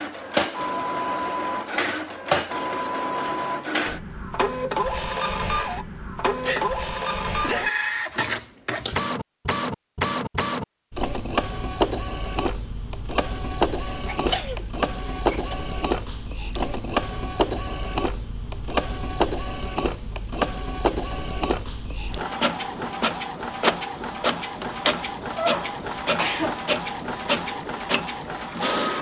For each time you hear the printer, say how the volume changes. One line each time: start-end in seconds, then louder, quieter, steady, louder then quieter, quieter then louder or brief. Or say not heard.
0.0-28.9 steady.